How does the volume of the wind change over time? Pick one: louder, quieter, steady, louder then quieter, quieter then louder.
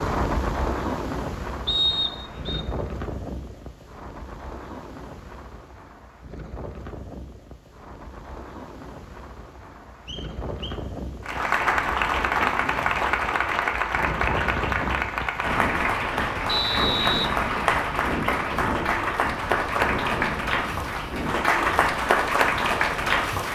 quieter then louder.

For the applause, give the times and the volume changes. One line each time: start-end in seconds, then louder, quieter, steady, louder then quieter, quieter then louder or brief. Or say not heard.
11.2-23.5 steady.